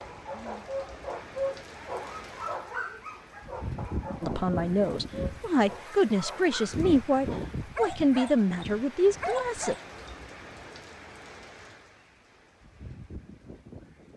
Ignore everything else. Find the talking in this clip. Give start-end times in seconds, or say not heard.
4.2-9.8.